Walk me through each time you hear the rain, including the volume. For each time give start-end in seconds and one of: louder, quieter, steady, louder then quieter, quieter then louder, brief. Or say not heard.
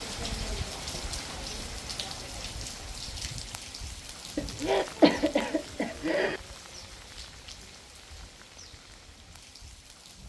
0.0-10.2 quieter.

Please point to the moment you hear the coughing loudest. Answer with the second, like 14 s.
5 s.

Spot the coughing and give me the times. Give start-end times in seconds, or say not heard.
4.3-6.4.